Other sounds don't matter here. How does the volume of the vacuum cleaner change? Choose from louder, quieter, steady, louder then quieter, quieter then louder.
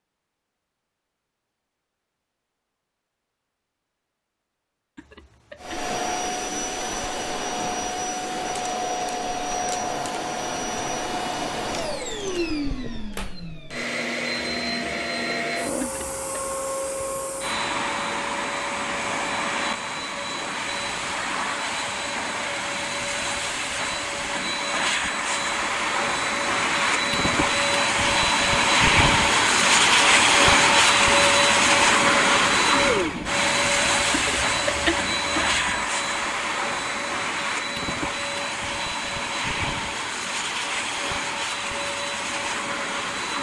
louder then quieter.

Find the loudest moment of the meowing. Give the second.
35 s.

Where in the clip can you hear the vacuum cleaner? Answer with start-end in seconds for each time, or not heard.
5.6-43.3.